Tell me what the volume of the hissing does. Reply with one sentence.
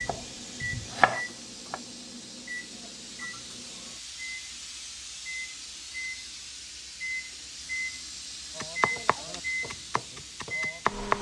The volume of the hissing stays about the same.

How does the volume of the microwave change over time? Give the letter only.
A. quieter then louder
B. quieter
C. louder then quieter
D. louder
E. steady
D.